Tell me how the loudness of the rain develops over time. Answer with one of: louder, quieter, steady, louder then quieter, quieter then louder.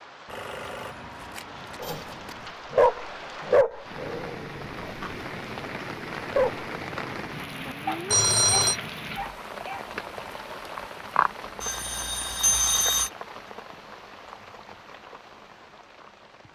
louder then quieter.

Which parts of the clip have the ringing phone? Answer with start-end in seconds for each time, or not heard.
0.2-2.5, 8.1-8.8, 11.6-13.1.